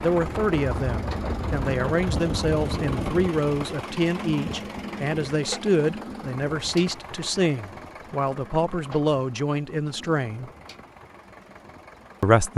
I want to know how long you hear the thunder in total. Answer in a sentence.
You can hear the thunder for 3 seconds altogether.